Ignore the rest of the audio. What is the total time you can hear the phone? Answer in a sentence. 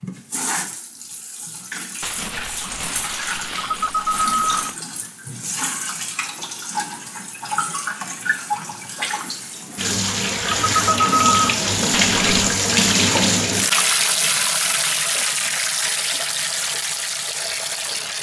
You can hear the phone for 2 seconds altogether.